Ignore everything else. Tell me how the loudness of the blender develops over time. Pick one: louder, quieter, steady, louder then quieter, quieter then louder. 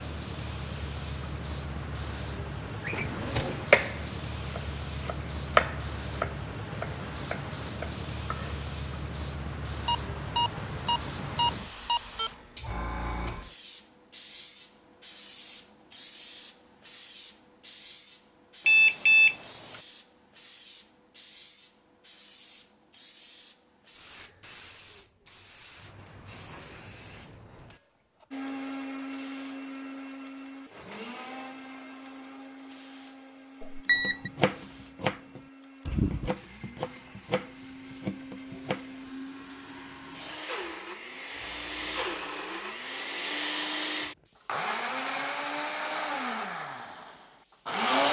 quieter then louder.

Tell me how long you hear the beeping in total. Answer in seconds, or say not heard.
4 s.